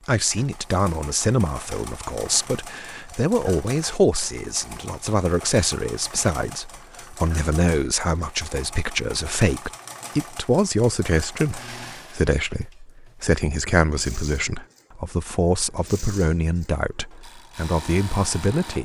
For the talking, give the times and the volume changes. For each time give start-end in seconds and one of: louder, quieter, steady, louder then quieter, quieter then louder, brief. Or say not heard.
0.1-18.7 steady.